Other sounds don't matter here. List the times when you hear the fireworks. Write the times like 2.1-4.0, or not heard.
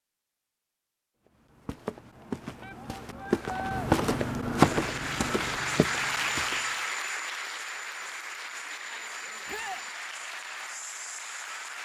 not heard.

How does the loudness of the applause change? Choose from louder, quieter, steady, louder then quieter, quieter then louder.
quieter.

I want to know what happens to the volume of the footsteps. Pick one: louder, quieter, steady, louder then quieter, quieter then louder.
louder then quieter.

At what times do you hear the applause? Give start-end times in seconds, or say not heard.
4.5-11.7.